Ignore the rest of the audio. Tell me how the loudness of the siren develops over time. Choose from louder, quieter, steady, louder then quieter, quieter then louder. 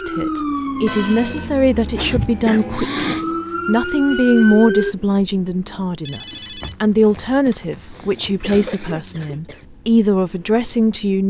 quieter then louder.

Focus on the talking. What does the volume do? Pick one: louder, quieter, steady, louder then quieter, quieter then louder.
steady.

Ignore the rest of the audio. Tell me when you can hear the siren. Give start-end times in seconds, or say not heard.
0.0-5.0.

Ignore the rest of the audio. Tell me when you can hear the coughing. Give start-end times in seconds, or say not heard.
1.9-3.2, 7.0-9.7.